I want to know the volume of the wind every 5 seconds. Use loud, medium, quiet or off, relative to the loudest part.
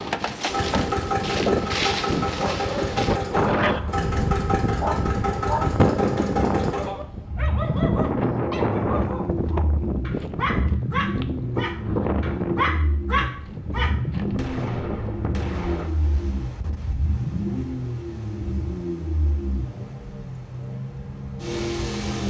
loud, loud, medium, quiet, quiet.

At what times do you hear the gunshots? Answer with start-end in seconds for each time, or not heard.
14.3-16.1.